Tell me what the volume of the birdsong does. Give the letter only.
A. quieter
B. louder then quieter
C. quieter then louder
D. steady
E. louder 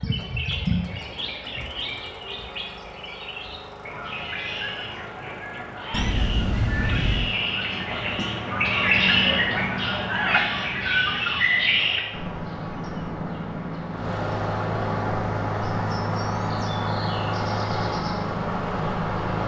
B.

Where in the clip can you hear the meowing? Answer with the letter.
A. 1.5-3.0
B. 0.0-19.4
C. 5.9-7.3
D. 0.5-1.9
C.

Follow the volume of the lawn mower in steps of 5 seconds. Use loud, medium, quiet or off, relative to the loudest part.
quiet, quiet, medium, loud.